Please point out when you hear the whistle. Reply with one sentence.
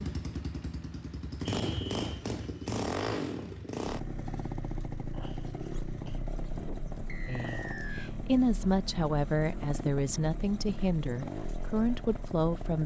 The whistle can be heard from 1.4 to 2.0 s and from 7.0 to 8.1 s.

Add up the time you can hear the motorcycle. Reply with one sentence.
You can hear the motorcycle for 13 seconds altogether.